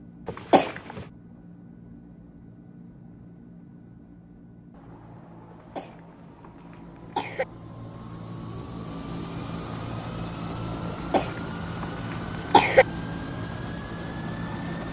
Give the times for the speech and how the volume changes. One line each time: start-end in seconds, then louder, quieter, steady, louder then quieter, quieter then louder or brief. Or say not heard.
not heard.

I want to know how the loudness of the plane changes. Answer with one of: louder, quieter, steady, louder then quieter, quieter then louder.
louder.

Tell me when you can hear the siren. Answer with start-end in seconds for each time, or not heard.
not heard.